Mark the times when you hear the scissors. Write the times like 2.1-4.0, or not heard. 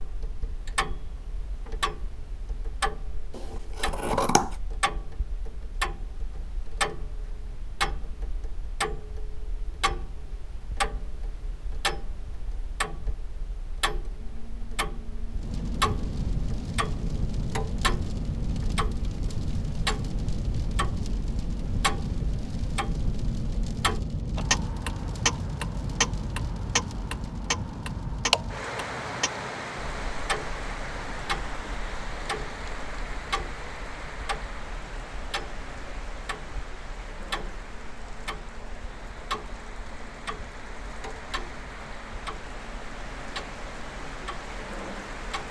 3.3-4.5.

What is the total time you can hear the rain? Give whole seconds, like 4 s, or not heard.
30 s.